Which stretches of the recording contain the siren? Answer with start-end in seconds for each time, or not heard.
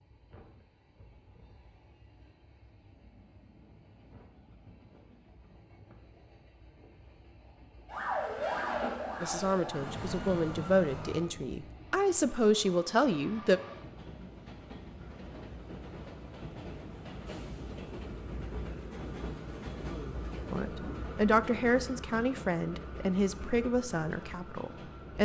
7.8-11.2.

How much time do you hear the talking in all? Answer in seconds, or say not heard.
9 s.